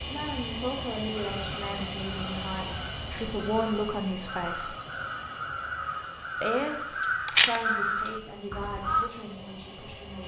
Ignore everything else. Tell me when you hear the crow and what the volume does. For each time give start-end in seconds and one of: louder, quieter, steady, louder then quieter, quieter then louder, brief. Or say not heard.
1.1-9.1 louder.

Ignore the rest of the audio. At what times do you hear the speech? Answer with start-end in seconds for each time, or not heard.
0.0-4.8, 6.4-10.2.